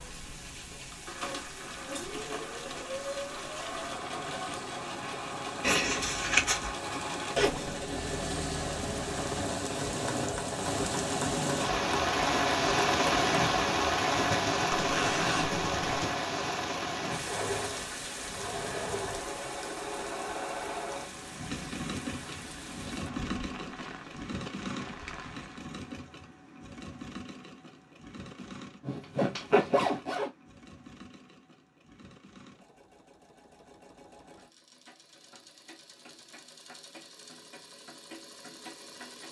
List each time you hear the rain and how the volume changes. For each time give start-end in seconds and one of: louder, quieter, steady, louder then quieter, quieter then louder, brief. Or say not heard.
0.0-25.7 louder then quieter.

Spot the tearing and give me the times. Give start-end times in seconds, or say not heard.
5.6-6.8.